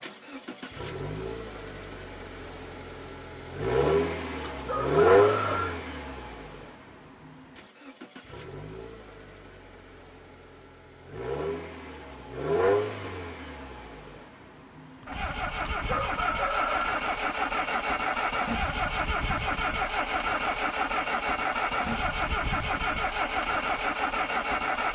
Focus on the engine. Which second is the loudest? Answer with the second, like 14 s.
5 s.